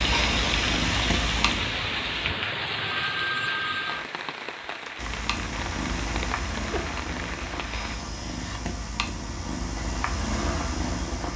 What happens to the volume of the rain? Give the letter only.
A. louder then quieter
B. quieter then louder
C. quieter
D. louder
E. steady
C.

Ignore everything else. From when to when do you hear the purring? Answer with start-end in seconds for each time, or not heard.
0.0-2.3, 5.0-11.3.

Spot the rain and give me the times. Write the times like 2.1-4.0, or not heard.
0.0-8.0.